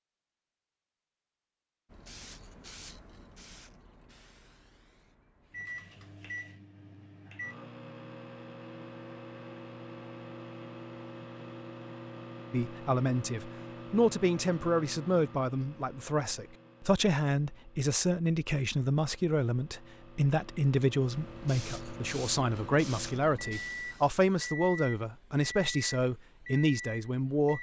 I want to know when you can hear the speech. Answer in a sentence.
You can hear the speech from 12.5 to 27.5 s.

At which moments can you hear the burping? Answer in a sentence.
The burping can't be heard in this clip.